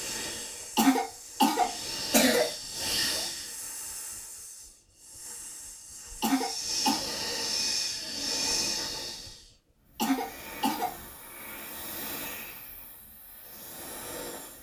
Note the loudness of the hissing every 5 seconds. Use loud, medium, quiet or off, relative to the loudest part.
loud, loud, medium.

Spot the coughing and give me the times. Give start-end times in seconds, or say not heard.
0.8-2.5, 6.2-7.0, 9.9-10.9.